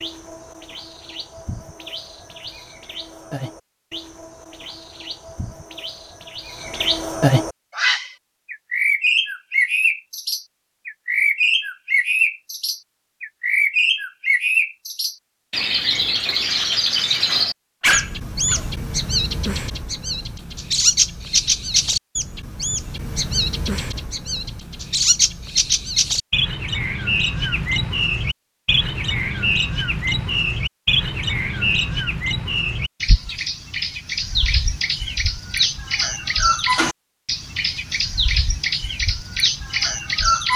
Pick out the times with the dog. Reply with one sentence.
The dog can be heard from 17.8 to 18.6 s.